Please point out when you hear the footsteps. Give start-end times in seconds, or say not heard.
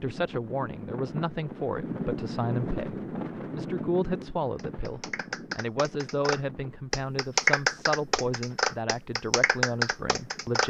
not heard.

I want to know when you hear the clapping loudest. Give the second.
8 s.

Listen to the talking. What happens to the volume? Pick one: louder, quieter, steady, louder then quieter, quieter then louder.
steady.